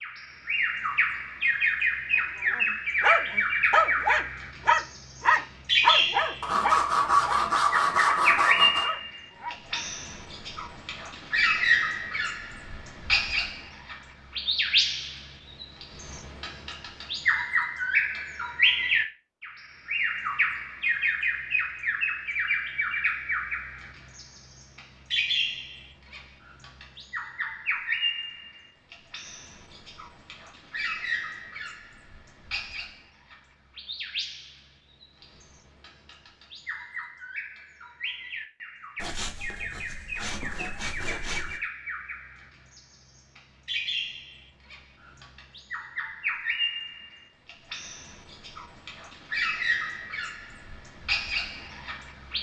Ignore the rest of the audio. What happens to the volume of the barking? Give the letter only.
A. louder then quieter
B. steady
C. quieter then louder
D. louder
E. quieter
E.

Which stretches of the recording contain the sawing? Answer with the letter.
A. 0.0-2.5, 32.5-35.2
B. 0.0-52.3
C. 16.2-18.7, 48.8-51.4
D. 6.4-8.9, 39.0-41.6
D.